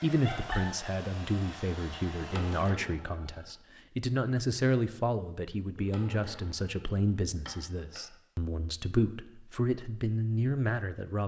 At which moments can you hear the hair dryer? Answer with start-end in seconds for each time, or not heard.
0.0-2.7.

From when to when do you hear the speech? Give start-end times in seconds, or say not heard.
0.0-11.2.